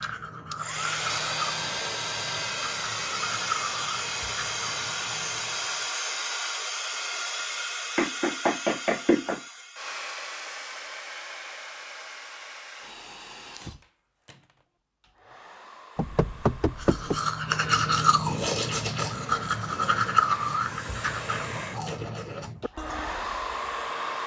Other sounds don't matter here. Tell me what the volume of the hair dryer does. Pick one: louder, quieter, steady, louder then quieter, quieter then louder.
quieter then louder.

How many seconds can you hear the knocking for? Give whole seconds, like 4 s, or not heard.
3 s.